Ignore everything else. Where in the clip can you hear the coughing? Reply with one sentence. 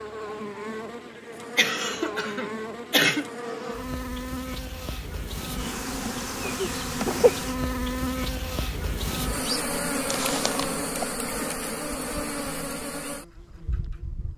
You can hear the coughing from 1.6 to 3.2 s, from 6.4 to 7.3 s and from 10.1 to 11.1 s.